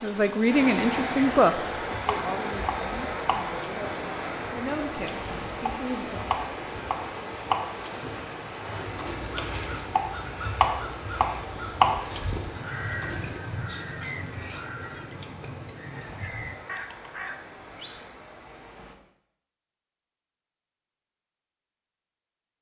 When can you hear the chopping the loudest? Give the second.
12 s.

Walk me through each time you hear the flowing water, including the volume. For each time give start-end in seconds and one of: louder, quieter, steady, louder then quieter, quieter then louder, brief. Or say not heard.
0.0-18.9 quieter.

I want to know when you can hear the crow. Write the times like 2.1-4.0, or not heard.
9.0-18.1.